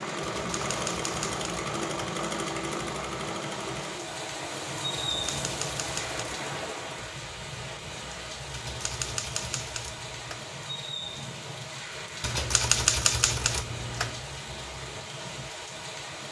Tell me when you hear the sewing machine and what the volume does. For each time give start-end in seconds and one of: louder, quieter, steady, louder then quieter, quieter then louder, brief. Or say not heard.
0.0-7.2 quieter.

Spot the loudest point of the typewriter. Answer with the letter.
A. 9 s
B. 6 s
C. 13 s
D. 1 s
C.